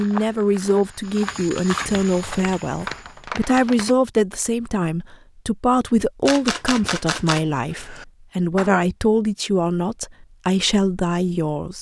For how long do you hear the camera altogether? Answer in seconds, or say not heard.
2 s.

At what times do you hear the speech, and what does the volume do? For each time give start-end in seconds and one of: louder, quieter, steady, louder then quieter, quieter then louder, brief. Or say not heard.
0.0-11.7 steady.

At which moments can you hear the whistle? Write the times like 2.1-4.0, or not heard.
not heard.